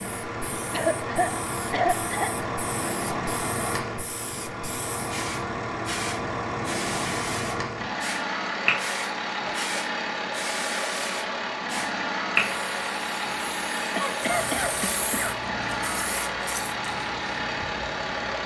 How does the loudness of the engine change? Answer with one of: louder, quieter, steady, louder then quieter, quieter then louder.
steady.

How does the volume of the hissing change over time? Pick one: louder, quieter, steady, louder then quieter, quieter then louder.
louder then quieter.